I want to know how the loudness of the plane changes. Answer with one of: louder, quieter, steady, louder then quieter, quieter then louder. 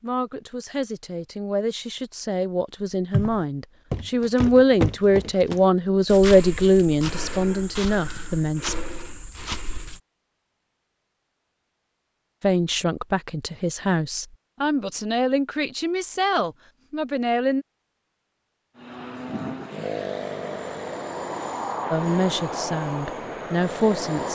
steady.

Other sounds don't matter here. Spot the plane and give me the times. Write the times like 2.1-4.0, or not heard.
18.8-24.2.